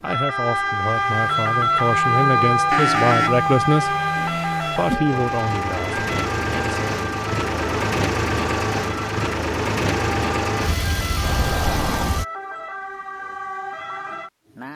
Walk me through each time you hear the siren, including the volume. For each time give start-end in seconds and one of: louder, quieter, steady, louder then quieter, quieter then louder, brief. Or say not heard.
0.0-14.6 quieter.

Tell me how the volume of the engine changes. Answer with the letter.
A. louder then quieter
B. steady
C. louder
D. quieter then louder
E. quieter
C.